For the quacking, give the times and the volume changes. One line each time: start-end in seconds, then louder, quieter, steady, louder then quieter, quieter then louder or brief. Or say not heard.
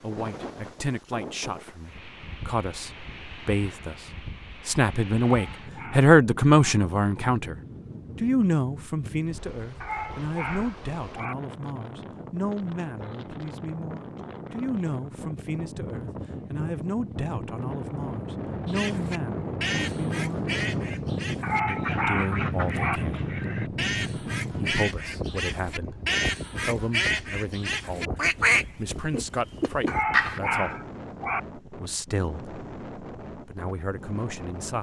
18.6-30.4 louder.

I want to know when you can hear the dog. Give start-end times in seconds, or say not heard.
5.3-6.8, 9.8-11.3, 21.4-23.0, 29.9-31.4.